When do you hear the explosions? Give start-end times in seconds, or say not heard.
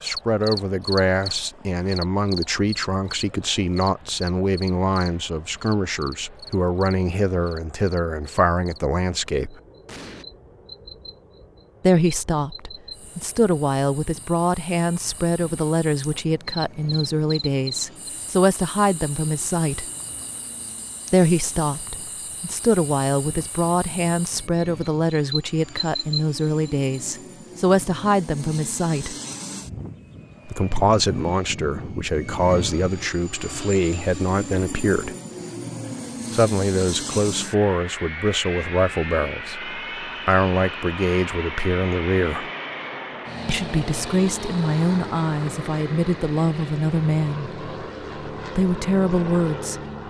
9.8-10.2.